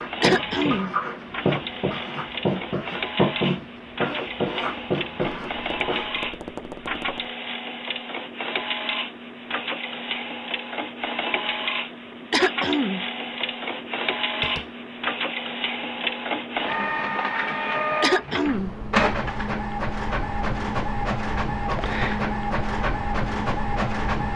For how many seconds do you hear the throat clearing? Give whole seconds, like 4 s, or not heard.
2 s.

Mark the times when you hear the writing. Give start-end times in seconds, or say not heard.
0.0-6.1.